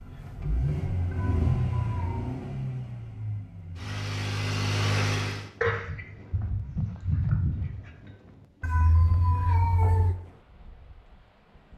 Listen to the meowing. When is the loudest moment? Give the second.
10 s.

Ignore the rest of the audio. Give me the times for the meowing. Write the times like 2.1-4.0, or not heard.
1.1-2.4, 8.6-10.2.